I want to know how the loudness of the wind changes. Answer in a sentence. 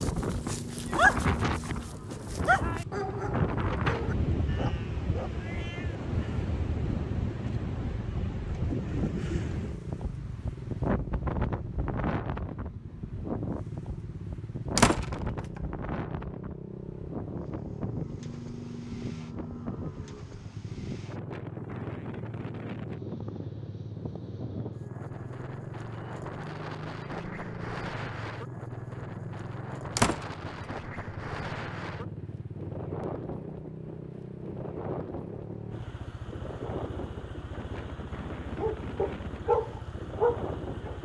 The loudness of the wind goes down.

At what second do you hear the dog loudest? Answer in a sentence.
The loudest moment of the dog is at 1 second.